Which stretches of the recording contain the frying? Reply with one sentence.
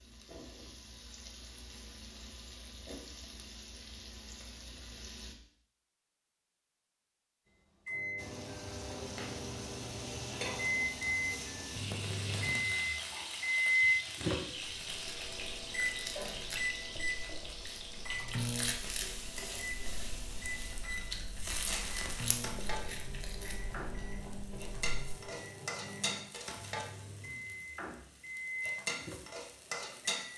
The frying can be heard from 0.0 to 5.3 s and from 8.2 to 30.3 s.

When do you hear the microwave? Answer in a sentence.
You can hear the microwave from 7.8 to 30.3 s.